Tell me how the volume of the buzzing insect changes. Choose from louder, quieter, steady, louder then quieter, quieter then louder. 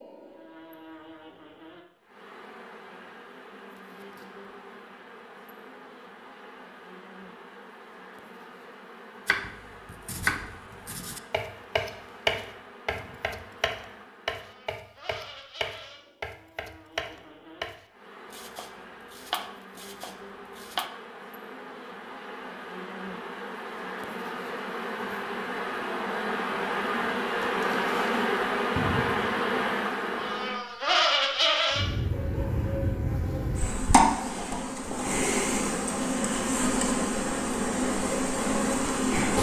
louder.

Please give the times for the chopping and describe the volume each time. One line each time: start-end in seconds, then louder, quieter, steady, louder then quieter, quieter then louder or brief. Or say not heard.
9.2-20.9 quieter.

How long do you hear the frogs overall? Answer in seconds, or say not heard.
not heard.